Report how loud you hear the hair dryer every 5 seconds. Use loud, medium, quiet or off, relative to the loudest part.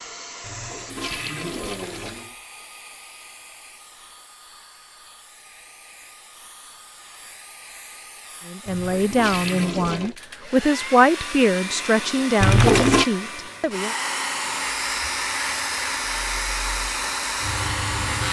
quiet, quiet, loud, loud.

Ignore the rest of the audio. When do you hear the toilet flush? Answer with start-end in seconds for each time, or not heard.
0.4-2.4, 8.7-10.2, 12.4-13.1.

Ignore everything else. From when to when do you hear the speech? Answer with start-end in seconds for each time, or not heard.
8.4-13.9.